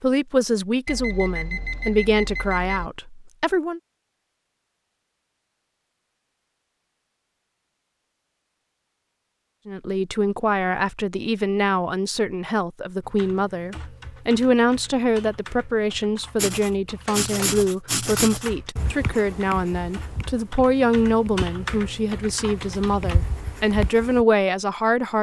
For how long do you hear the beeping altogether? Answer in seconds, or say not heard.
2 s.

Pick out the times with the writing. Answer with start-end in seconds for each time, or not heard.
16.4-24.2.